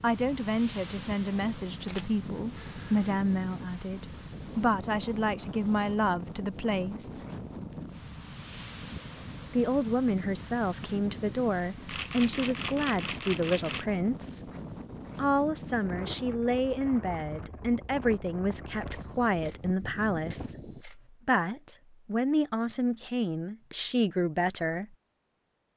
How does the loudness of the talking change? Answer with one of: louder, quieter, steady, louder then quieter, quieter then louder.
steady.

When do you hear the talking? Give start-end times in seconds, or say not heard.
0.0-7.2, 9.5-14.4, 15.2-24.9.